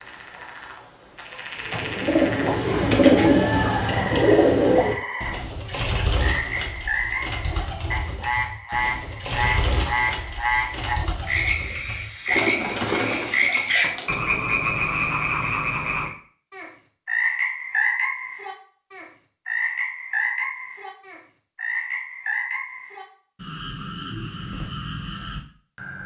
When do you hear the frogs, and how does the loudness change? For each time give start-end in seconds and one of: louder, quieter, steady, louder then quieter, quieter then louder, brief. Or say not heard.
0.0-26.0 louder then quieter.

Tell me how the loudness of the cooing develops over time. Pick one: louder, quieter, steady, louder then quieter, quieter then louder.
quieter then louder.